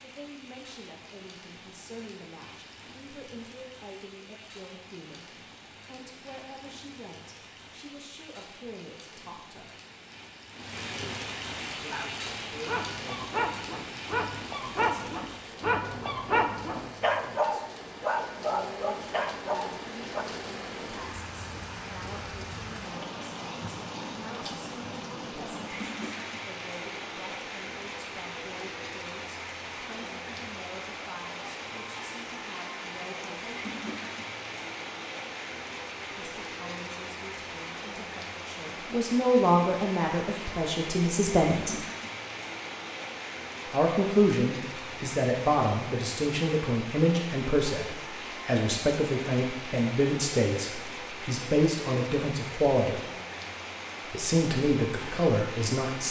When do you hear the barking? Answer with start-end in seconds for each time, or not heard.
11.8-20.2.